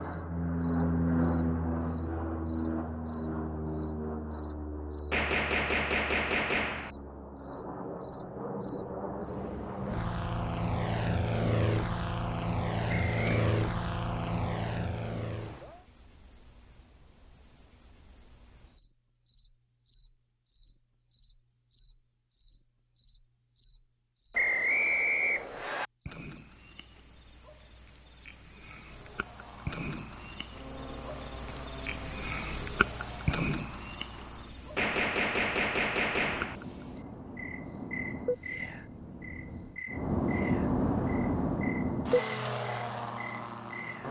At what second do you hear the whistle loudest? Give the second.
25 s.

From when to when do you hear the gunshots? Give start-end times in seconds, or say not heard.
5.1-6.9, 34.8-36.5.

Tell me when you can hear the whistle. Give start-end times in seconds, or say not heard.
12.8-13.4, 24.3-25.9.